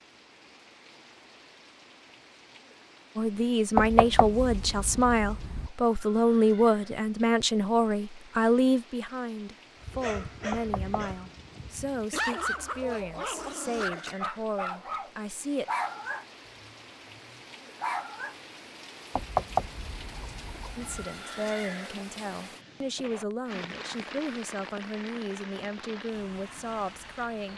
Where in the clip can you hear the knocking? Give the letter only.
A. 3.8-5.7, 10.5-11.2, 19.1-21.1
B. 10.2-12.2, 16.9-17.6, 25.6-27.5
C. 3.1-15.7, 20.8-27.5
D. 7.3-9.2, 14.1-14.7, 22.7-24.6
A.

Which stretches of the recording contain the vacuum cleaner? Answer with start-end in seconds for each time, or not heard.
not heard.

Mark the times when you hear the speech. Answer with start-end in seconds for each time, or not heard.
3.1-15.7, 20.8-27.5.